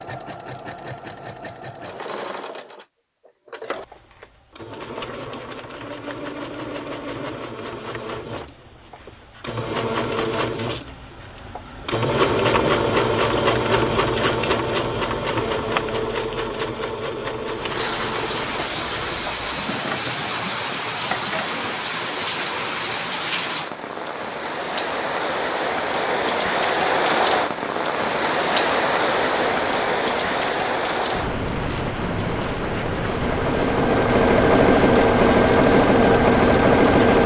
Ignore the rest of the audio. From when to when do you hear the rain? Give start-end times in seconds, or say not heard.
17.5-37.2.